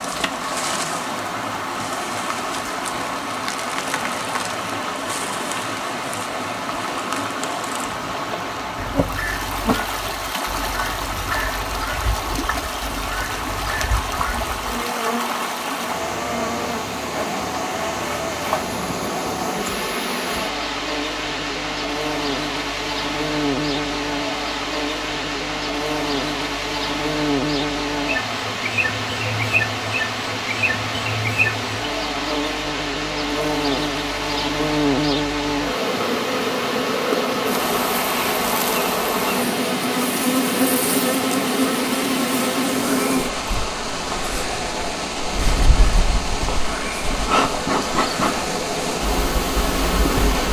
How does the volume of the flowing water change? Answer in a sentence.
The loudness of the flowing water stays about the same.